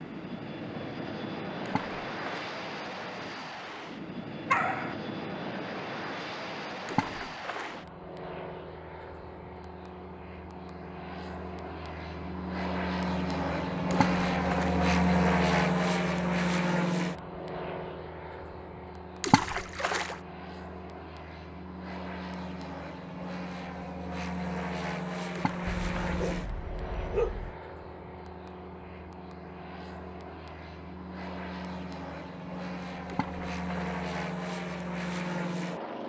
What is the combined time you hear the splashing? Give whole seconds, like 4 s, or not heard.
6 s.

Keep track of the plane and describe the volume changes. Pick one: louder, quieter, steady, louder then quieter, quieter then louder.
louder then quieter.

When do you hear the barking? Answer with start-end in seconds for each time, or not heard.
4.5-5.0, 25.7-27.6.